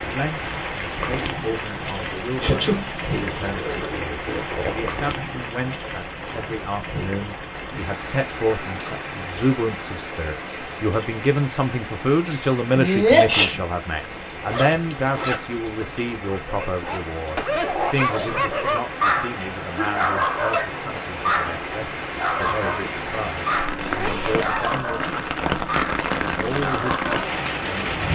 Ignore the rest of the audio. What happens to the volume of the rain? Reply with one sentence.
The loudness of the rain goes down, then up.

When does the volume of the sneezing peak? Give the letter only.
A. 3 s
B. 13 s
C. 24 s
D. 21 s
B.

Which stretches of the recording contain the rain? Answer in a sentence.
The rain can be heard from 0.0 to 28.1 s.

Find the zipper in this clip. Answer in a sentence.
You can hear the zipper from 3.4 to 5.0 s, from 14.0 to 15.8 s and from 23.8 to 25.4 s.